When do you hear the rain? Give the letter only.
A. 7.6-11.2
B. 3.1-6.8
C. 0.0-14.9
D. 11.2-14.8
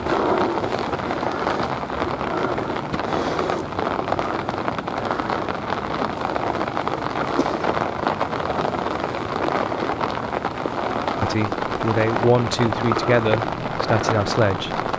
C.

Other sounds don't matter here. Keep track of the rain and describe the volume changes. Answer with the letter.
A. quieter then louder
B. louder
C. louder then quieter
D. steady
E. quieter
D.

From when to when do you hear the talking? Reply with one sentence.
The talking can be heard from 11.2 to 14.8 s.